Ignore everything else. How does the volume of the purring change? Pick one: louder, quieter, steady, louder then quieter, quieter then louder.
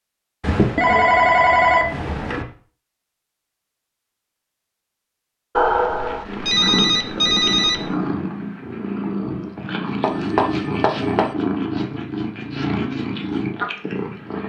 steady.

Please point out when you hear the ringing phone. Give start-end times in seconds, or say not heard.
0.4-2.5, 5.5-7.9, 10.0-11.3.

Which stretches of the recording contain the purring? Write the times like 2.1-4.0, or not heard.
6.2-14.4.